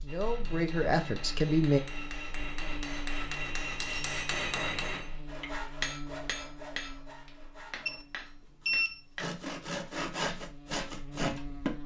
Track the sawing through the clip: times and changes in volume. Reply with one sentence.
The sawing can be heard from 5.2 to 11.8 s, getting quieter then louder.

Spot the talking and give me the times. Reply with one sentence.
The talking can be heard from 0.0 to 1.8 s.